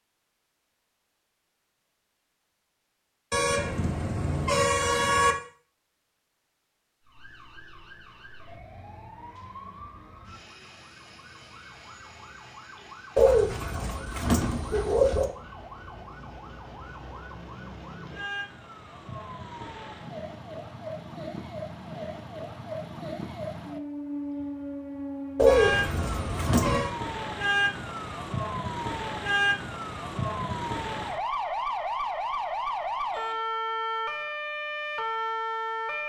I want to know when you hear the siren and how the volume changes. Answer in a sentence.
You can hear the siren from 7.0 to 36.0 s, getting louder.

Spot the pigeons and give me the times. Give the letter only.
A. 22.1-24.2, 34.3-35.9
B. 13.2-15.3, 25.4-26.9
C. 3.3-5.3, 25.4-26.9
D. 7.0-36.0
B.